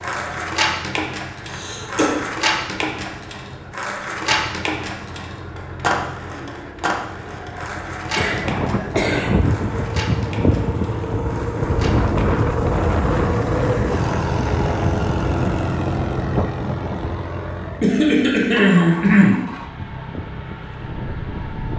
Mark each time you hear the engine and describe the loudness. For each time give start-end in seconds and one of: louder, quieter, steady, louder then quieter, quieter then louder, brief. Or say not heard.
0.0-21.7 louder then quieter.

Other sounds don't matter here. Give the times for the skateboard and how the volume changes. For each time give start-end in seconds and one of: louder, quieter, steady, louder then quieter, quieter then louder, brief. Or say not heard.
0.0-12.4 quieter.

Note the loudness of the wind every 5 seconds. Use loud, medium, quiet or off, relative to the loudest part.
off, loud, loud, loud, medium.